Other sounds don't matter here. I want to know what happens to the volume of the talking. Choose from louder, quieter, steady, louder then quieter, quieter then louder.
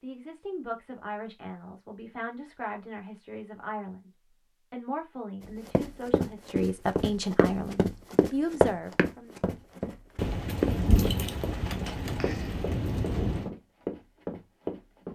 louder.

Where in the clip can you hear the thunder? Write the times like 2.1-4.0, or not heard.
10.2-13.5.